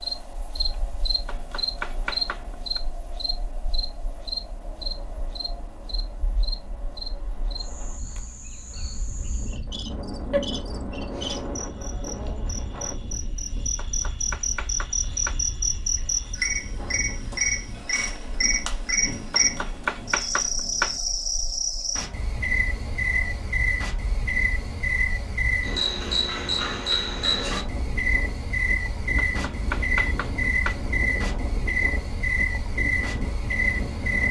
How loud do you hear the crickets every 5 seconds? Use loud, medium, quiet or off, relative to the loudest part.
loud, quiet, medium, loud, loud, loud, loud.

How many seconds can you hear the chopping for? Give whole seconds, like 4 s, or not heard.
7 s.